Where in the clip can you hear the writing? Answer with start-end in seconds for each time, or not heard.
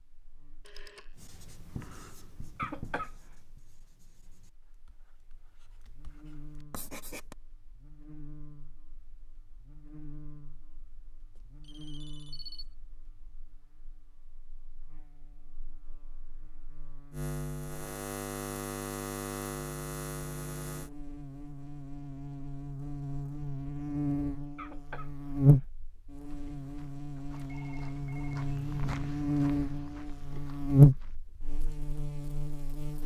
1.1-7.3.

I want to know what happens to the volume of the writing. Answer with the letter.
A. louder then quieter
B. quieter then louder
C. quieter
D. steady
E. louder
B.